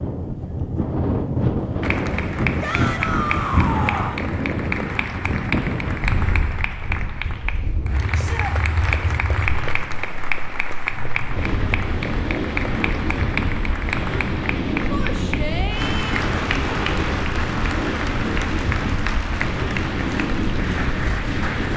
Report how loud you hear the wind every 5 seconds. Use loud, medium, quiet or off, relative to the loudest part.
loud, medium, loud, loud, loud.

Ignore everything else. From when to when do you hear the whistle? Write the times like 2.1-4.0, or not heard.
not heard.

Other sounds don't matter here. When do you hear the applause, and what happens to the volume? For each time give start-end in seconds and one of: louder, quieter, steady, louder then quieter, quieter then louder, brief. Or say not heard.
1.8-21.7 steady.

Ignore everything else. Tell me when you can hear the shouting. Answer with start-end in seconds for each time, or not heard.
2.6-4.2, 8.1-8.6, 14.9-16.2.